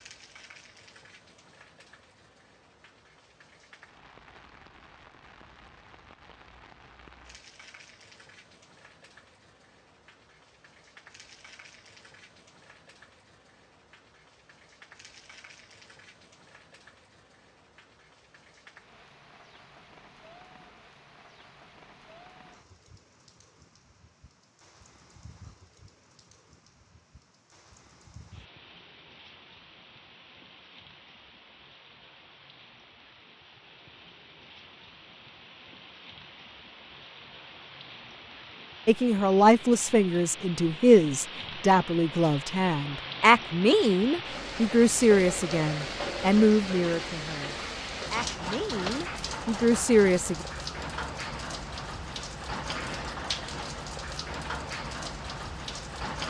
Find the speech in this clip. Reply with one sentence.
You can hear the speech from 38.9 to 50.4 s.